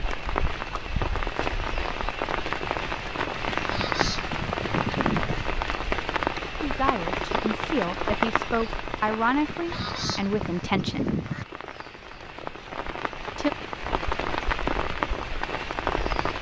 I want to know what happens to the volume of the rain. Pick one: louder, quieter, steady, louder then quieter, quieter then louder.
quieter then louder.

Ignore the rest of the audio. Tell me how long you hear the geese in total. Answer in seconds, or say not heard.
4 s.